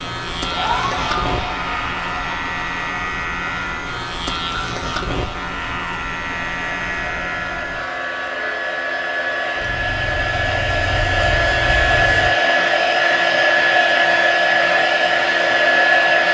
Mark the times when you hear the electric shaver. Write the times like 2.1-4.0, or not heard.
0.0-12.3.